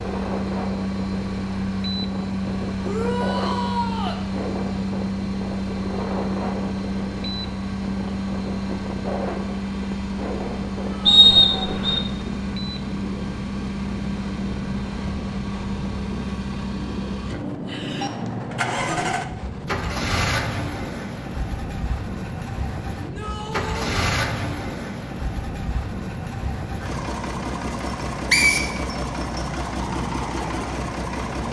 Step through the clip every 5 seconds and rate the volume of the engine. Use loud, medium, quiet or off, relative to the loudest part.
loud, loud, loud, loud, loud, medium, loud.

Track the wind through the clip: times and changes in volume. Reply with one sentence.
You can hear the wind from 0.0 to 31.4 s, at a steady volume.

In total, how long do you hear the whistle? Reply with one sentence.
You can hear the whistle for 2 seconds altogether.